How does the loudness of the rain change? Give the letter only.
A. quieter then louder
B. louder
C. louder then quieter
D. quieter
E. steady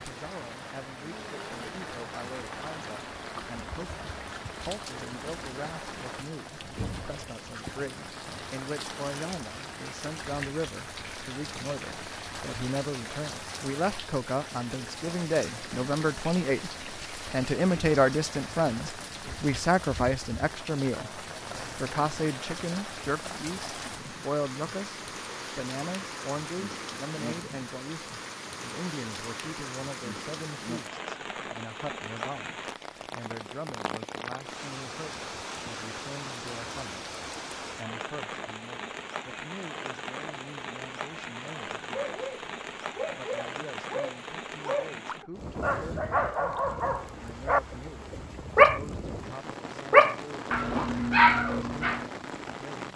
E.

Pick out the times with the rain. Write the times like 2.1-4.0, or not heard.
0.0-52.9.